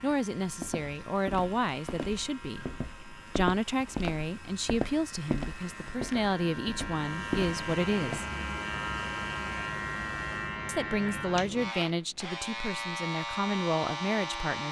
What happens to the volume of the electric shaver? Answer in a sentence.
The loudness of the electric shaver goes up.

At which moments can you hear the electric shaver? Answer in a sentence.
The electric shaver can be heard from 0.0 to 14.6 s.